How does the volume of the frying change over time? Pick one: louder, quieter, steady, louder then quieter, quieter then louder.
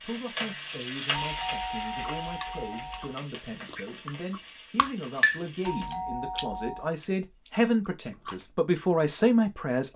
quieter.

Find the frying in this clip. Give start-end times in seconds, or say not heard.
0.0-5.9.